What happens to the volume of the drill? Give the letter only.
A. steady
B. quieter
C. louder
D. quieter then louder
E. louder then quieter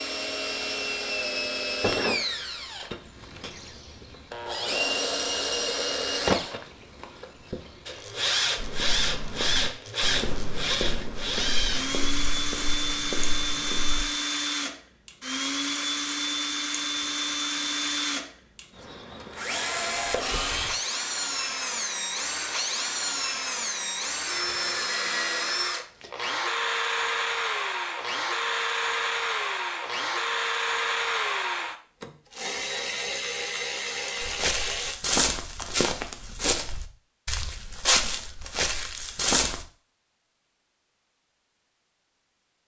A.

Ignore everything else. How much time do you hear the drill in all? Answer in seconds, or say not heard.
35 s.